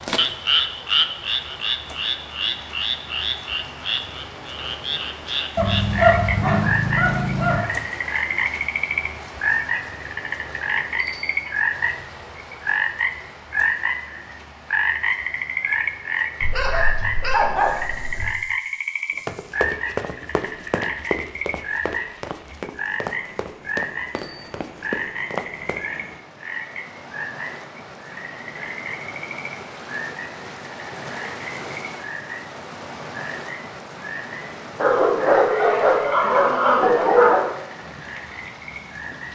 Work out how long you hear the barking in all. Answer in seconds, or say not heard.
7 s.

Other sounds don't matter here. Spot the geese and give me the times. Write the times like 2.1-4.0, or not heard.
not heard.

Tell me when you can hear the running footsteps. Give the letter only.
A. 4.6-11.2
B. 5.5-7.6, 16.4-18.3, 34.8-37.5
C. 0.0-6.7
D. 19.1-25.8
D.